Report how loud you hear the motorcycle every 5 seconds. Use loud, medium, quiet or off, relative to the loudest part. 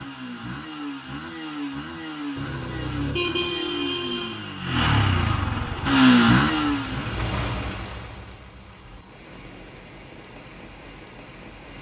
medium, loud, off.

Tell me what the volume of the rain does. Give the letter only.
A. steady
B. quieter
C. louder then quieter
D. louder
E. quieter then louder
B.